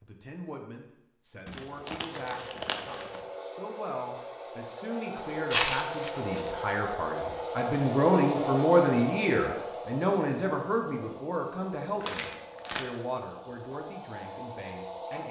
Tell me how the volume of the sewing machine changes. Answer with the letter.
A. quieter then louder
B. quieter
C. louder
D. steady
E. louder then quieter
E.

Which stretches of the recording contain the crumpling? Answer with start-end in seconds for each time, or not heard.
1.4-3.2, 5.5-6.6, 12.0-12.8.